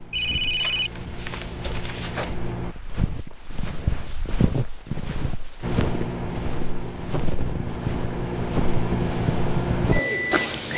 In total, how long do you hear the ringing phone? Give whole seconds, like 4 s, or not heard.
2 s.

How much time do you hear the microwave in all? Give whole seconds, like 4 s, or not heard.
8 s.